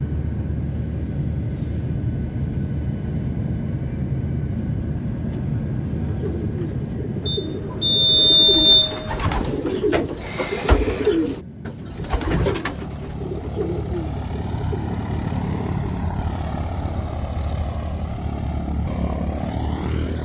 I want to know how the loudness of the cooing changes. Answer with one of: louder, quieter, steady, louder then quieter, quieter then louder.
louder then quieter.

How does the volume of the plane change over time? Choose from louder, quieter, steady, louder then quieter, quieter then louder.
quieter then louder.